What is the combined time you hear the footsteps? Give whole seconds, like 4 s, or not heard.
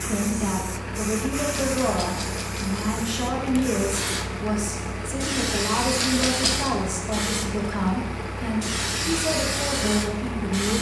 not heard.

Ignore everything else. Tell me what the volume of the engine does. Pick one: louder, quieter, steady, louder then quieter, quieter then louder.
steady.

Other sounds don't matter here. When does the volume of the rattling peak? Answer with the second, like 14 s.
6 s.